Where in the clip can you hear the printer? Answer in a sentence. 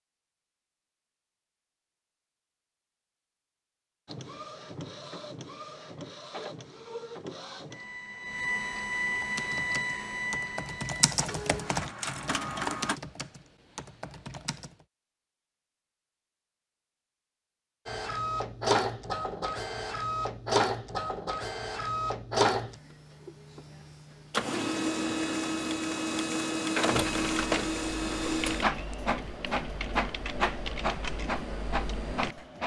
The printer can be heard from 4.0 to 13.0 s and from 17.9 to 32.6 s.